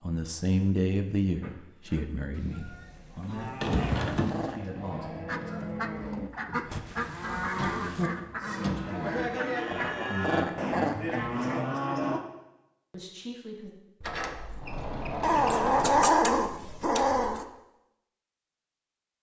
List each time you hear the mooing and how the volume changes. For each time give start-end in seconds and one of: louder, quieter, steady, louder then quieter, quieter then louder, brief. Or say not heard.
1.4-12.2 louder.